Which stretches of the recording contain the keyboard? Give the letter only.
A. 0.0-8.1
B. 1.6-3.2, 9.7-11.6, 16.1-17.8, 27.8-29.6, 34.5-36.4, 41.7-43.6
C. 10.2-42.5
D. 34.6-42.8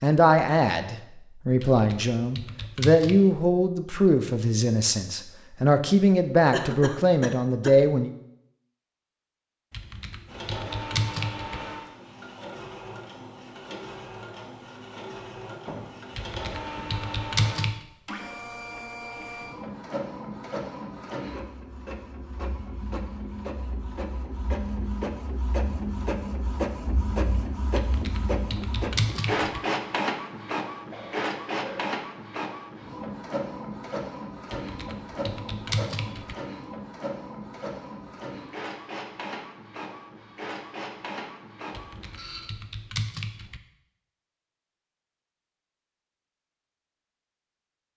B.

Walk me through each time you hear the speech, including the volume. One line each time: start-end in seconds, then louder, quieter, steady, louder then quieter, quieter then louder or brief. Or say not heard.
0.0-8.1 steady.